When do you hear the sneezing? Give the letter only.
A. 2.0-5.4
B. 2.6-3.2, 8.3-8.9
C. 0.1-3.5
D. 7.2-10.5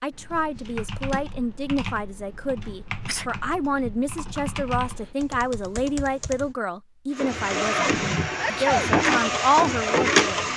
B.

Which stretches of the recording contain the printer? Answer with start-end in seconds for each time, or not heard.
7.2-10.5.